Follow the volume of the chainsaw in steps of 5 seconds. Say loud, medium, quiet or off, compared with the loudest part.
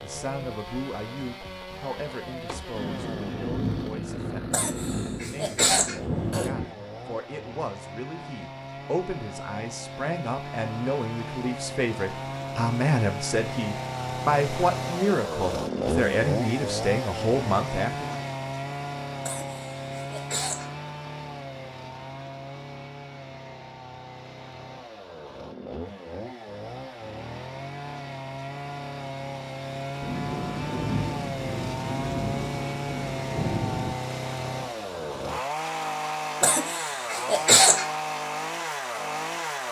medium, medium, loud, loud, medium, medium, loud, loud.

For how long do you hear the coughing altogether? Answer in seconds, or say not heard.
5 s.